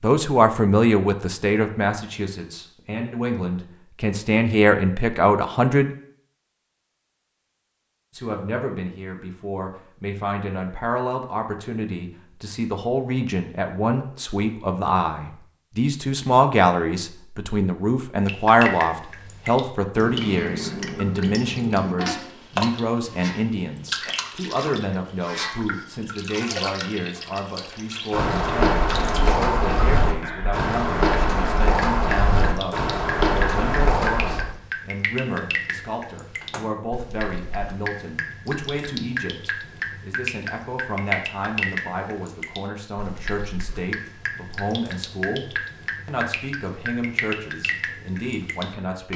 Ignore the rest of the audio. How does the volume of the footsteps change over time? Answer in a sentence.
The loudness of the footsteps stays about the same.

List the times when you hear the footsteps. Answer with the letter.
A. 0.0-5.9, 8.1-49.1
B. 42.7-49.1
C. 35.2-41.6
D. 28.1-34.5
D.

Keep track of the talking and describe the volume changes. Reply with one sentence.
The loudness of the talking goes down.